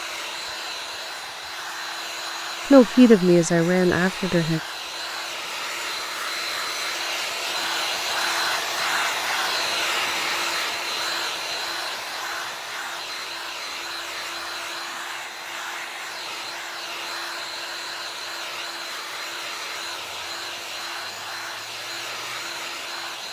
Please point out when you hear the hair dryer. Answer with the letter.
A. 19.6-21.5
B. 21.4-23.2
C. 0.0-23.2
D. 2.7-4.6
C.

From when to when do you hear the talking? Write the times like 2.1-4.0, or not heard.
2.7-4.6.